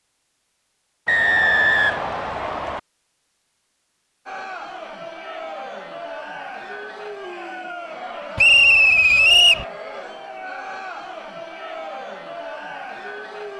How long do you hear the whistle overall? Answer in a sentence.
The whistle can be heard for 3 seconds in total.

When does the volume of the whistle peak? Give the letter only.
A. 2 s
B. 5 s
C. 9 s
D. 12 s
C.